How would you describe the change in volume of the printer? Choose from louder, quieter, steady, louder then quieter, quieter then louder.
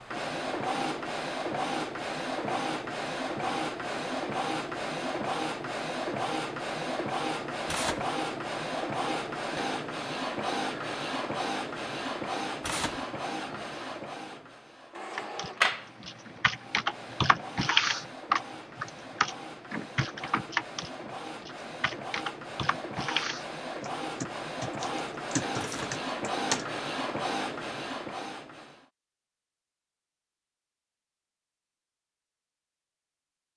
quieter then louder.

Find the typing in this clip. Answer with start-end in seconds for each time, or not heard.
15.2-26.6.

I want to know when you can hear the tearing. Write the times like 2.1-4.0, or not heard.
7.7-8.1, 12.6-13.1, 25.6-26.0.